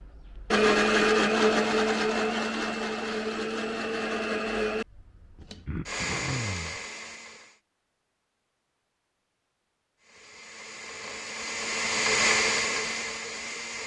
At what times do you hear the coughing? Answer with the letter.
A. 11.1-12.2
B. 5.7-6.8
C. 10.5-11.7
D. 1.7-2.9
B.